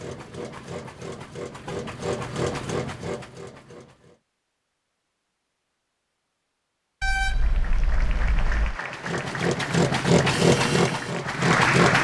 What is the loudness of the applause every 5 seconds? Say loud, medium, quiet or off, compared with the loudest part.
off, medium, loud.